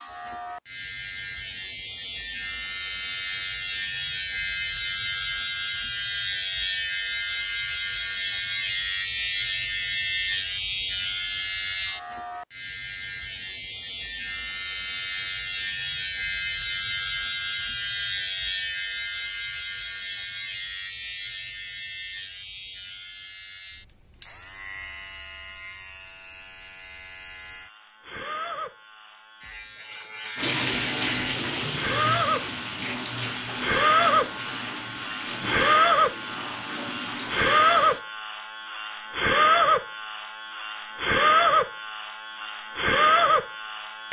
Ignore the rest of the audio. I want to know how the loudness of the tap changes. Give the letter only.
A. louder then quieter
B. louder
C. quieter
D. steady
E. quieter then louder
C.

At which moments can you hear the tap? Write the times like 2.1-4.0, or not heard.
30.4-38.0.